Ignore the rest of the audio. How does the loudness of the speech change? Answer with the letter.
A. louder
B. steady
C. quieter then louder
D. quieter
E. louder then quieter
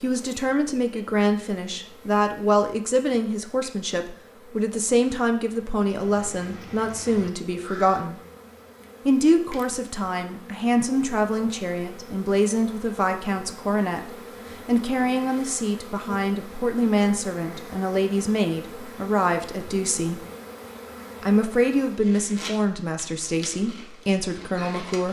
B.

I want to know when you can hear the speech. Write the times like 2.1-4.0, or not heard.
0.0-8.2, 9.1-20.2, 21.2-25.0.